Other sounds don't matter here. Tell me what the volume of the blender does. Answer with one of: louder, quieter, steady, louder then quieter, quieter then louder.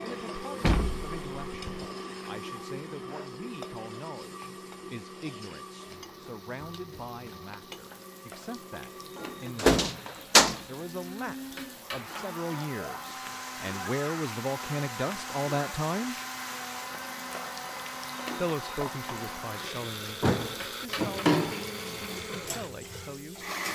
quieter then louder.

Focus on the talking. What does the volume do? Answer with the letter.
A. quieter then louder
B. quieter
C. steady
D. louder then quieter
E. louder
D.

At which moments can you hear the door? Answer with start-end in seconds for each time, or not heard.
0.6-1.9, 9.2-10.6, 20.2-21.6.